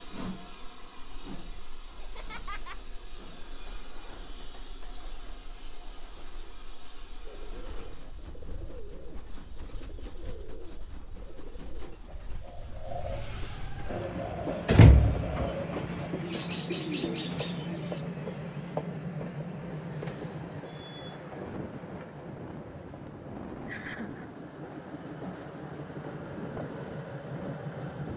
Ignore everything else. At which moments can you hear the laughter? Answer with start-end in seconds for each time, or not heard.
1.9-2.8, 23.6-24.3.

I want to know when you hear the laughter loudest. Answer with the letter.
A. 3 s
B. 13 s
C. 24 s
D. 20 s
C.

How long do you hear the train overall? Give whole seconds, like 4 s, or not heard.
28 s.